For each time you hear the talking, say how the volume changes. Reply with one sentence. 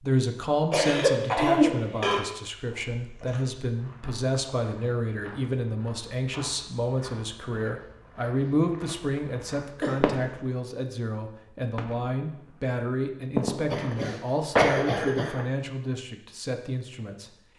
You can hear the talking from 0.0 to 17.3 s, at a steady volume.